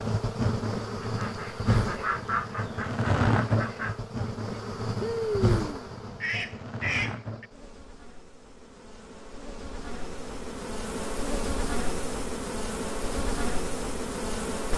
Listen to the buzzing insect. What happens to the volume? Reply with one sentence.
The volume of the buzzing insect goes down, then up.